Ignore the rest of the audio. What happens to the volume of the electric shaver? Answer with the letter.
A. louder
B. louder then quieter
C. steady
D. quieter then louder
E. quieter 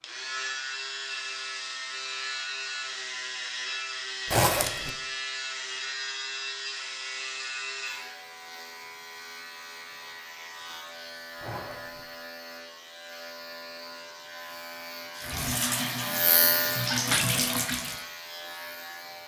D.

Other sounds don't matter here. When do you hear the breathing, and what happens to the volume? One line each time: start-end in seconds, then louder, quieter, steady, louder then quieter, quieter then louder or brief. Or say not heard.
not heard.